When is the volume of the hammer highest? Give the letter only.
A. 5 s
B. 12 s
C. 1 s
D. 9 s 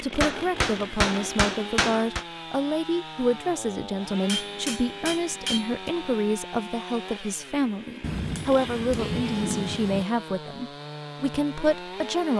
C.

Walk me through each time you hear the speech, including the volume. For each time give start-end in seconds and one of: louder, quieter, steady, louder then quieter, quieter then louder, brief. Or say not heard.
0.0-12.3 steady.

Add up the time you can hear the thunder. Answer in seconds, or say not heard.
2 s.